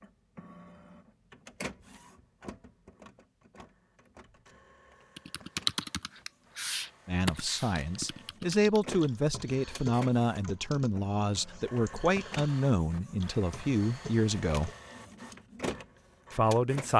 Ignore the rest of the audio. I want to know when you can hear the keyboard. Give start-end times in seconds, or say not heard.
5.2-14.8.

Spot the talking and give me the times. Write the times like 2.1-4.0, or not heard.
7.0-14.7, 16.3-16.9.